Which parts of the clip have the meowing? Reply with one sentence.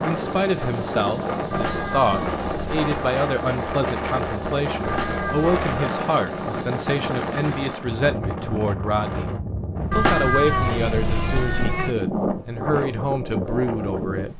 You can hear the meowing from 1.5 to 2.9 s, from 4.8 to 5.7 s and from 9.9 to 11.9 s.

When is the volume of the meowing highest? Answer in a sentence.
The loudest moment of the meowing is at 10 seconds.